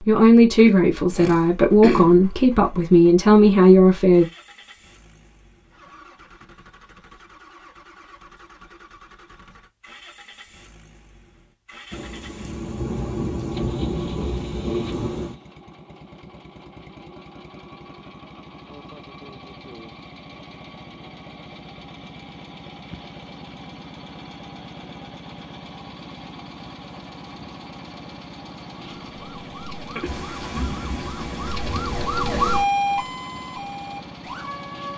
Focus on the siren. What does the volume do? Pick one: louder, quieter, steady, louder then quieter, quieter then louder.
louder then quieter.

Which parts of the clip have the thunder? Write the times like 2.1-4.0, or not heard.
11.9-15.3, 30.1-32.0.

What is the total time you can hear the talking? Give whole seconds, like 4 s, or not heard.
4 s.